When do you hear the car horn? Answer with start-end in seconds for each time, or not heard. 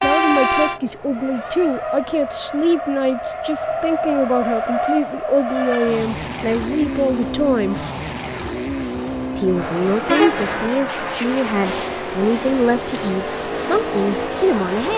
0.0-0.8, 10.1-10.7.